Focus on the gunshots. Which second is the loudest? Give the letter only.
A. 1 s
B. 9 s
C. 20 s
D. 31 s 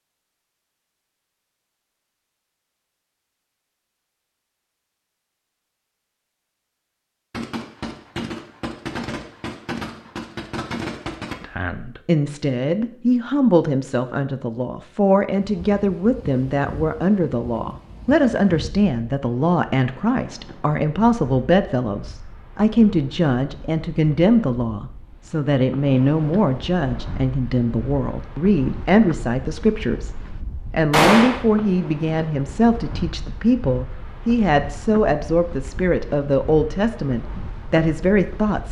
D.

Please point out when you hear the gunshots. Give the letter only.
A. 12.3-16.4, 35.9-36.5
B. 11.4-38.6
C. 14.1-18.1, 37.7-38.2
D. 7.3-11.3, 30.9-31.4
D.